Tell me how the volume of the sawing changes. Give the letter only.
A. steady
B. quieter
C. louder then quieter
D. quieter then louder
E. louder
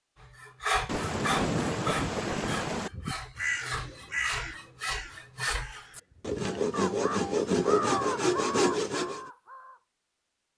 D.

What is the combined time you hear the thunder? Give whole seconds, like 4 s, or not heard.
2 s.